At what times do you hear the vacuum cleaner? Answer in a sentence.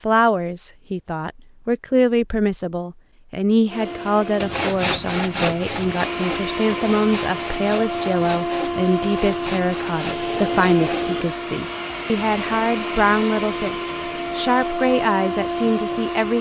The vacuum cleaner can be heard from 3.6 to 16.3 s.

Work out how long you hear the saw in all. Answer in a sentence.
The saw can be heard for 7 seconds in total.